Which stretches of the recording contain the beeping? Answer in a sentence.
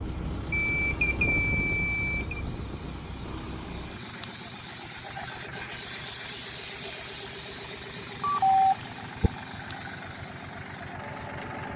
The beeping can be heard from 0.5 to 2.4 s and from 8.2 to 9.3 s.